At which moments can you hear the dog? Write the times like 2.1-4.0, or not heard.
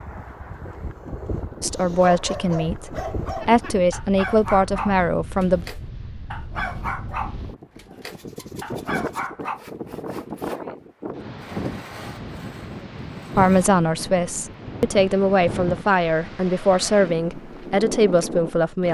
1.7-9.6.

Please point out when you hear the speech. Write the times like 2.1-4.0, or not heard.
1.6-5.7, 13.3-18.9.